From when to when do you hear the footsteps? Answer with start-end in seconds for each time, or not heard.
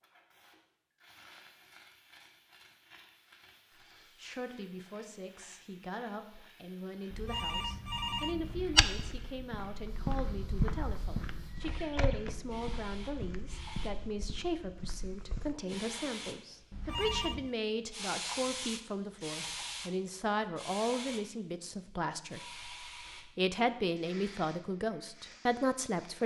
8.4-15.8.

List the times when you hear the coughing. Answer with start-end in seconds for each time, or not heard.
not heard.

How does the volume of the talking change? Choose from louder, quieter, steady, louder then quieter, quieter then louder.
louder.